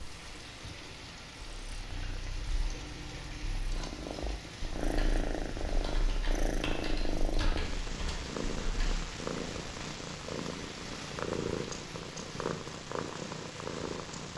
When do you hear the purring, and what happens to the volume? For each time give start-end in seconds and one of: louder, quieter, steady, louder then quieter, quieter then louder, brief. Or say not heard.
0.0-14.3 louder.